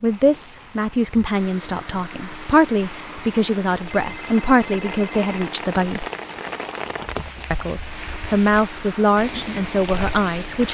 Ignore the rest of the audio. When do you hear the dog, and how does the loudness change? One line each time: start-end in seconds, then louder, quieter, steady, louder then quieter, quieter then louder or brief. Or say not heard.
not heard.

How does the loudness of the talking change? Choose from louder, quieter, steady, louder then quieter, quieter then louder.
steady.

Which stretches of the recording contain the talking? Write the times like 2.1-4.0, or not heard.
0.0-6.0, 7.5-10.6.